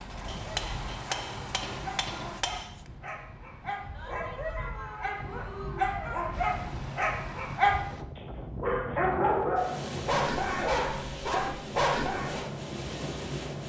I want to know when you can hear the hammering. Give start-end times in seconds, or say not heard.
0.2-2.9.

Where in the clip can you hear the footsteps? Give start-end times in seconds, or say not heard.
not heard.